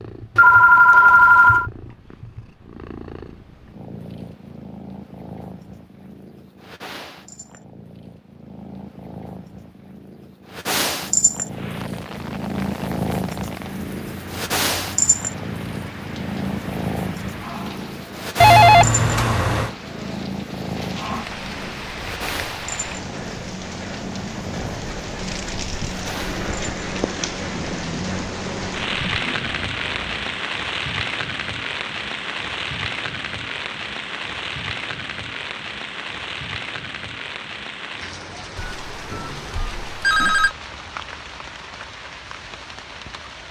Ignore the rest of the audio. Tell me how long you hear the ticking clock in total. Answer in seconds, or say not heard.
not heard.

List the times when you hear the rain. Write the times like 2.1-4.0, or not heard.
11.4-43.4.